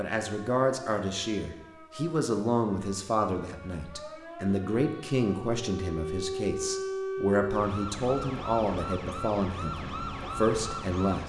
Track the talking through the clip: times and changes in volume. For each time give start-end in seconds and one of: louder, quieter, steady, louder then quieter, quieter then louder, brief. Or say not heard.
0.0-11.2 steady.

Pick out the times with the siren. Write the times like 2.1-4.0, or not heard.
0.2-11.2.